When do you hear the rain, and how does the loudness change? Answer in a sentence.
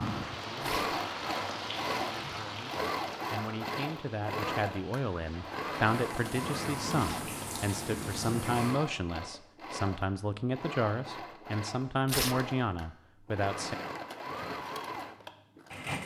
You can hear the rain from 0.0 to 8.8 s, getting quieter then louder.